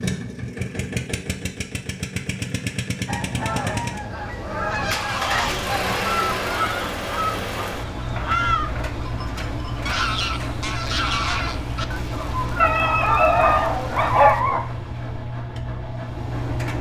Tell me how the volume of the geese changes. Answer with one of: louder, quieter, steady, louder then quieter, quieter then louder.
steady.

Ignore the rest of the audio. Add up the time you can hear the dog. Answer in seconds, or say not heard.
2 s.